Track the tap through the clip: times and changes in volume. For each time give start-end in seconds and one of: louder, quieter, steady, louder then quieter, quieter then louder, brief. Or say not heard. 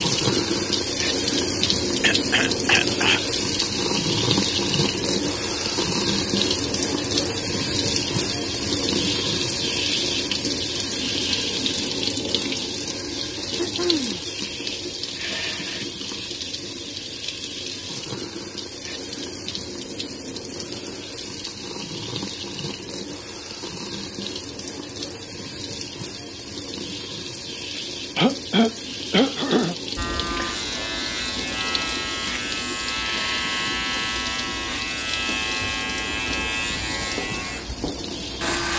0.0-38.7 quieter.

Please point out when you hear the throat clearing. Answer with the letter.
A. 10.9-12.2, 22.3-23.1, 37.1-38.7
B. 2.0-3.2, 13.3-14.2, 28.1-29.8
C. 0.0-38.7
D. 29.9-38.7
B.